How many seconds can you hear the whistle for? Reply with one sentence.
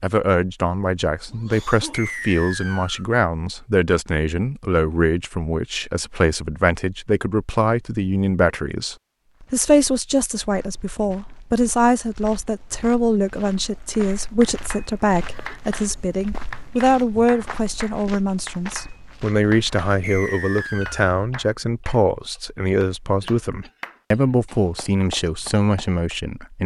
The whistle can be heard for 2 seconds in total.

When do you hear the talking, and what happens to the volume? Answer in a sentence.
You can hear the talking from 0.0 to 26.6 s, at a steady volume.